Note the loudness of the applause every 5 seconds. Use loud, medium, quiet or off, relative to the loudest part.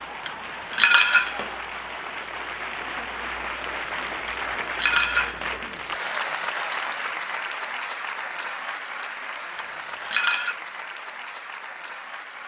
loud, loud, medium.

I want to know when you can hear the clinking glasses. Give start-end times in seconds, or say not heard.
0.2-1.5, 4.2-5.5, 9.6-10.6.